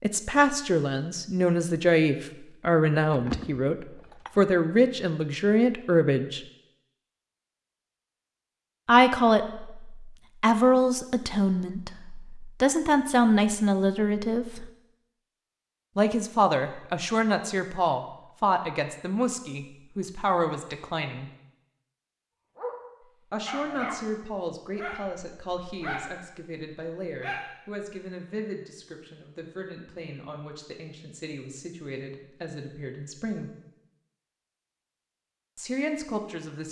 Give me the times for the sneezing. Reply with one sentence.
You can't hear the sneezing here.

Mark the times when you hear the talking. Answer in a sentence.
The talking can be heard from 0.0 to 6.4 s, from 8.8 to 14.7 s, from 15.9 to 21.3 s, from 23.3 to 33.5 s and from 35.5 to 36.6 s.